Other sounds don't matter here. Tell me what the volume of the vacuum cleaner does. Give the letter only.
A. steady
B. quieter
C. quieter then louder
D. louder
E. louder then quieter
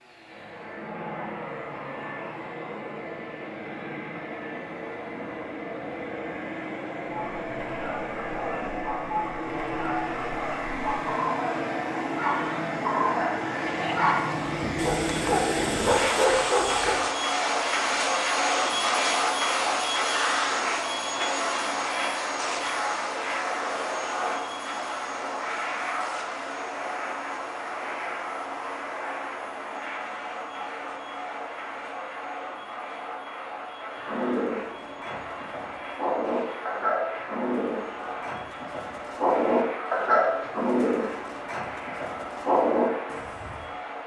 E.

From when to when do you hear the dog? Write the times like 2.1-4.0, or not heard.
7.0-17.0, 33.8-43.6.